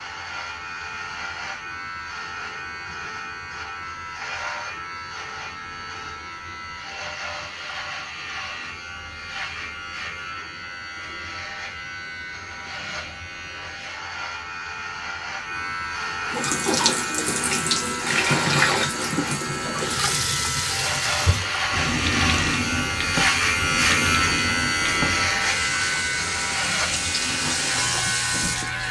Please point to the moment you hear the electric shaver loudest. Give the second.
24 s.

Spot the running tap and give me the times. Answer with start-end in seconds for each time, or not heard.
16.3-28.8.